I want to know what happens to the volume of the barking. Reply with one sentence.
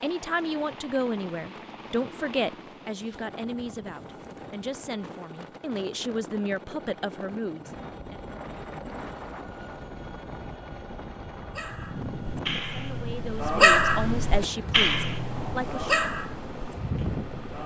The loudness of the barking goes up, then down.